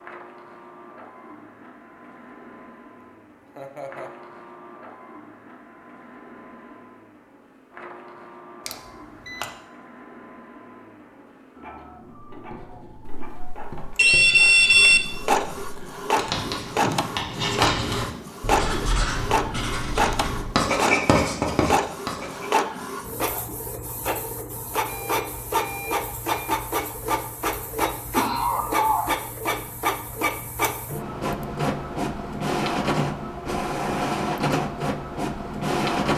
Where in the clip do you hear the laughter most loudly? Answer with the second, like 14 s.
29 s.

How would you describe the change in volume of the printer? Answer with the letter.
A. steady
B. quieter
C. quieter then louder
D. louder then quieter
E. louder
E.